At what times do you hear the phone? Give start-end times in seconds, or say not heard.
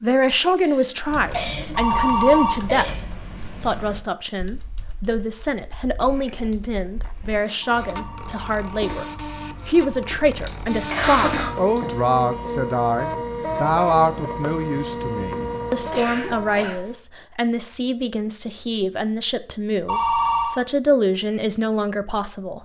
1.8-2.6, 7.7-10.2, 19.9-20.6.